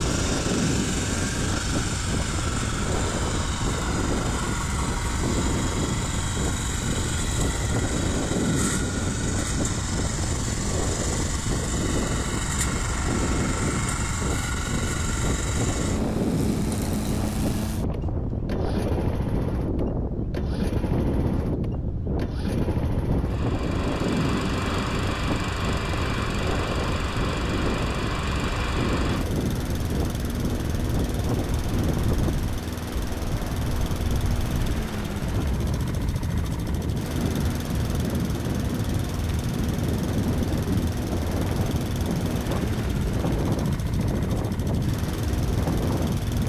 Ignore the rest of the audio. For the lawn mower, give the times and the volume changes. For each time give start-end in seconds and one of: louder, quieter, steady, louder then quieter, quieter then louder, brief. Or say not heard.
0.0-46.4 steady.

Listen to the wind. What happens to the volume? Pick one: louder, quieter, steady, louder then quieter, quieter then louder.
steady.